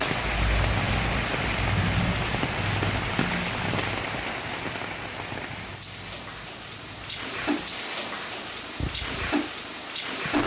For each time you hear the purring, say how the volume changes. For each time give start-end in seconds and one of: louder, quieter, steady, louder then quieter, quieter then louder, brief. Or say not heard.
0.0-10.4 quieter then louder.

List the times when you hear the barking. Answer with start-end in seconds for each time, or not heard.
not heard.